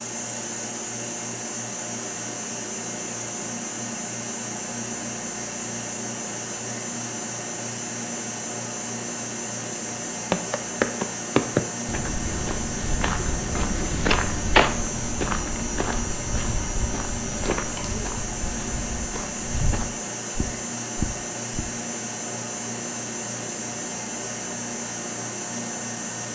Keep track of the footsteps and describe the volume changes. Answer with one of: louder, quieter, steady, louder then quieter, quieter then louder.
quieter.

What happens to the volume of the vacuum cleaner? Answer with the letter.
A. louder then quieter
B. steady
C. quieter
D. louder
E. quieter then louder
B.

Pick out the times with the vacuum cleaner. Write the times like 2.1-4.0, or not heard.
0.0-26.3.